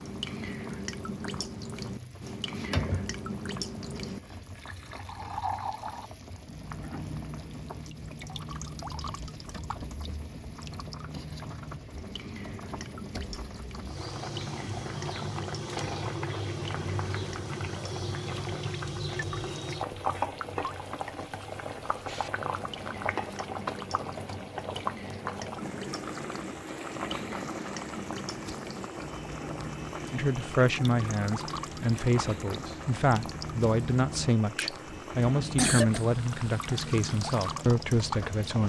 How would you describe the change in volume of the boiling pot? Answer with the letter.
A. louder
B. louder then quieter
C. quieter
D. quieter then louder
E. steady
B.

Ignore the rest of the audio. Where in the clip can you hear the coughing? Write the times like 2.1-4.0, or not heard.
34.9-36.0.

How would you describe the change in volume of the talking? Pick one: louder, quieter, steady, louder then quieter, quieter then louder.
steady.